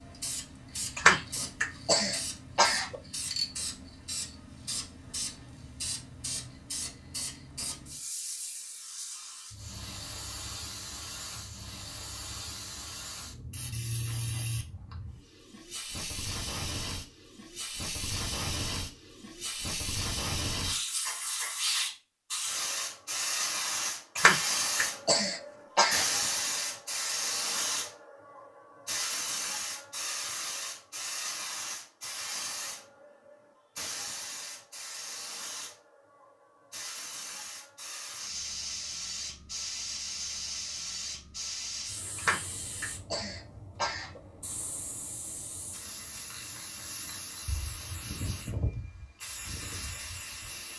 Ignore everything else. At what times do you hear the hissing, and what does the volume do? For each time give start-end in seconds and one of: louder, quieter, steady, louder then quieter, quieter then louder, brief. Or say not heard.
0.0-50.7 louder then quieter.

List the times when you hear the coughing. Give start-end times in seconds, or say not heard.
0.9-3.0, 24.1-26.1, 42.1-44.2.